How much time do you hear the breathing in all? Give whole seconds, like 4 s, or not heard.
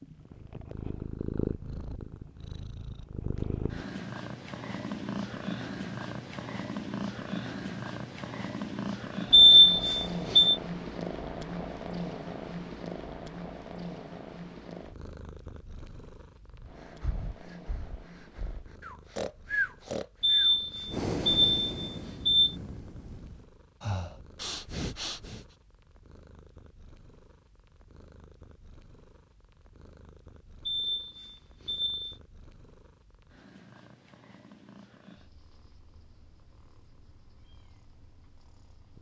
9 s.